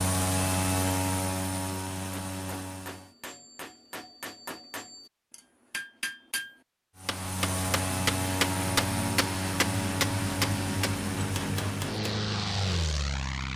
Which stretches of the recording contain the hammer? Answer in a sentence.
You can hear the hammer from 1.9 to 12.2 s.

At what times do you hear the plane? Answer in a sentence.
The plane can be heard from 0.0 to 3.1 s and from 7.0 to 13.5 s.